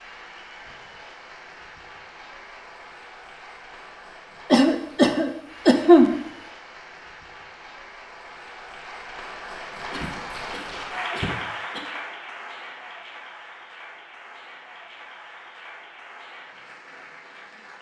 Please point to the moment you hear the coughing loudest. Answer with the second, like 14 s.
6 s.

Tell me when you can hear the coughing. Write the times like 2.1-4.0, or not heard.
4.5-6.2, 9.9-11.8.